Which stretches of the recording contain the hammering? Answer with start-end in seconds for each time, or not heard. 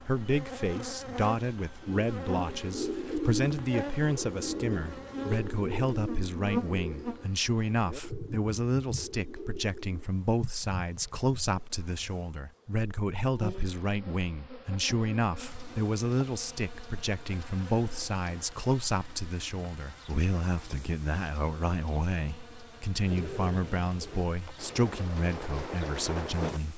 not heard.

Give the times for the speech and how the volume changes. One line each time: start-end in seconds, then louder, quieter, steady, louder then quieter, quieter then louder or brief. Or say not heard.
0.1-26.7 steady.